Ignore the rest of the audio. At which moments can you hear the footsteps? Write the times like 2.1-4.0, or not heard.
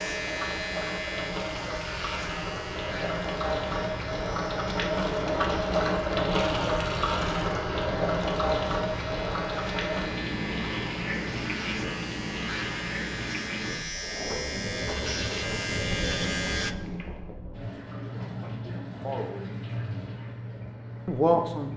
not heard.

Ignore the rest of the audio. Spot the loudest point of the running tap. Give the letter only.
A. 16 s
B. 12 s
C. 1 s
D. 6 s
D.